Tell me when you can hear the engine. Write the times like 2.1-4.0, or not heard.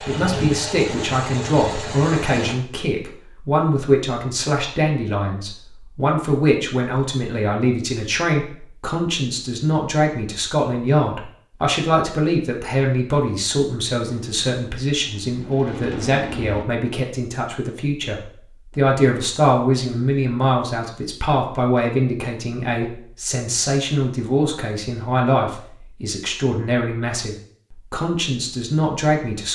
0.0-2.5, 14.2-16.6.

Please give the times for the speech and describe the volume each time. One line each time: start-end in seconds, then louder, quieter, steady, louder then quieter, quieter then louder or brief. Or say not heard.
0.0-29.4 steady.